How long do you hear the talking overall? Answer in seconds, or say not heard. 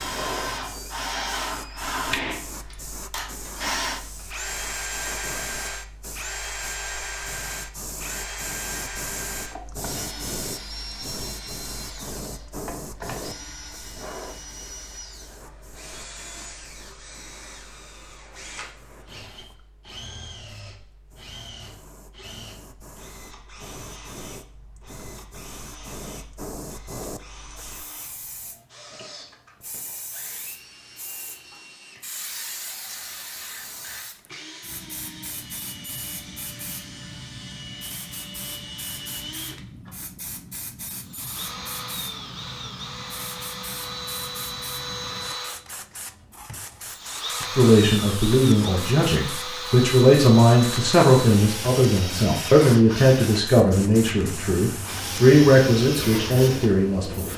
10 s.